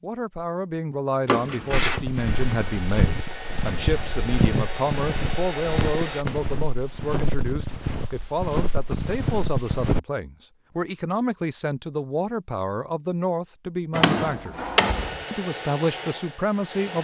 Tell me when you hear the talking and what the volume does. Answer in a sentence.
The talking can be heard from 0.0 to 14.6 s, at a steady volume; and briefly from 15.3 to 16.9 s.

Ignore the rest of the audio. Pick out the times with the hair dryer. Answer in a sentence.
You can hear the hair dryer from 2.1 to 6.2 s and from 14.8 to 16.9 s.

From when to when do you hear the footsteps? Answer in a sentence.
The footsteps can be heard from 1.7 to 10.0 s.